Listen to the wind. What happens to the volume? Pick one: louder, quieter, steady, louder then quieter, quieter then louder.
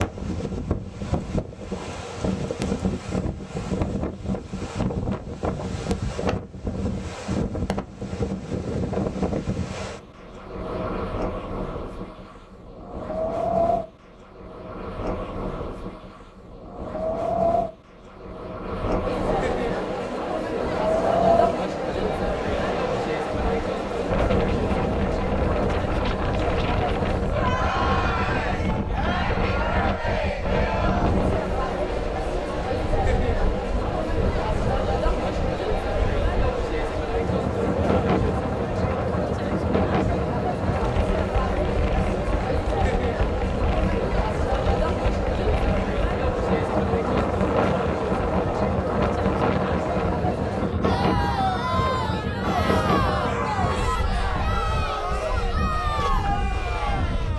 steady.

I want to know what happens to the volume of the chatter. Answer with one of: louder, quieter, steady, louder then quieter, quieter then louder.
steady.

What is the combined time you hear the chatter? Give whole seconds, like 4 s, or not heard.
38 s.